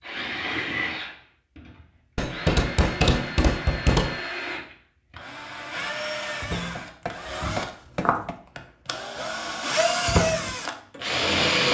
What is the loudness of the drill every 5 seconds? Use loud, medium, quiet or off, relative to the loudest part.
medium, medium, loud.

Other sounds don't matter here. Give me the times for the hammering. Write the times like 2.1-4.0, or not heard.
2.1-4.2, 6.8-8.3.